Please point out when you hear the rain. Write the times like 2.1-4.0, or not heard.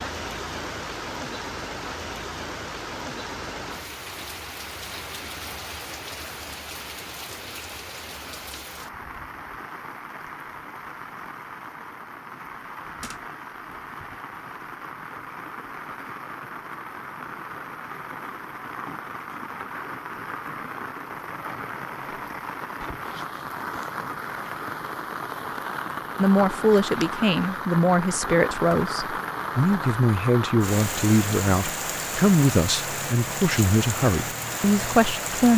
0.0-35.5.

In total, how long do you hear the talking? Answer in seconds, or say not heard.
9 s.